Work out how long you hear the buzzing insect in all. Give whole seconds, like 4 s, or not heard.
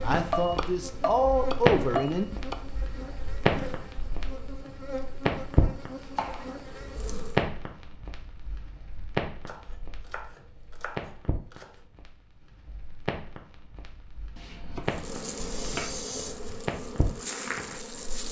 11 s.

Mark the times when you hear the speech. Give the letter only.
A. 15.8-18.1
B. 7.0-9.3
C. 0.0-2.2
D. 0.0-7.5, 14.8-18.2
C.